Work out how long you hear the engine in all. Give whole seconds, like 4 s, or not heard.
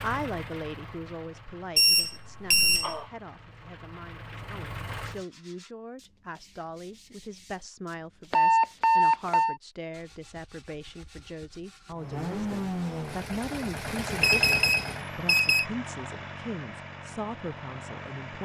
12 s.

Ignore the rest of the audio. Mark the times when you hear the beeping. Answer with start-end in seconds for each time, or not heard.
1.8-3.0, 8.3-9.6, 14.2-15.7.